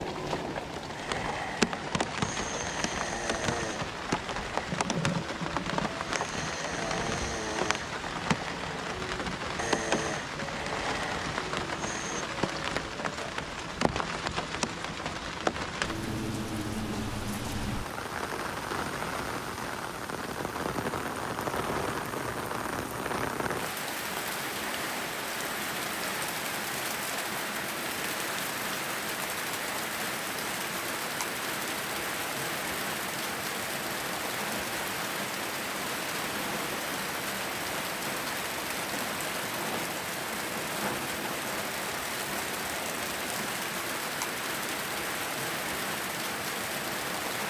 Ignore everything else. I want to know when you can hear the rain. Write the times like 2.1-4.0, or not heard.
0.0-47.4.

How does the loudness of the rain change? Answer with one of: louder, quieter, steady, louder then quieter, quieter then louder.
steady.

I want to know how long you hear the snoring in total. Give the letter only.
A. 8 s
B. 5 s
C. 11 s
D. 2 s
C.